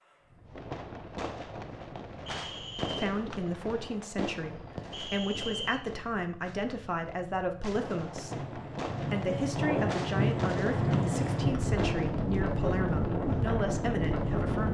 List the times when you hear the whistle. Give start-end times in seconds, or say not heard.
2.2-3.0, 4.9-5.8, 11.5-12.2.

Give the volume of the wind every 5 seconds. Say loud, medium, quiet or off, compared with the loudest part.
quiet, medium, loud.